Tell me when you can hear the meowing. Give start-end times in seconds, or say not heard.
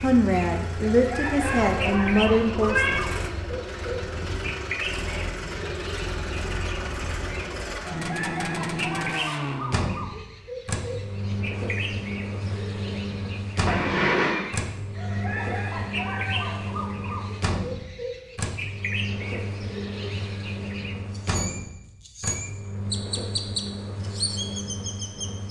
1.4-3.0, 13.7-14.4.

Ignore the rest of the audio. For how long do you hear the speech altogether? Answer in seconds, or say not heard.
3 s.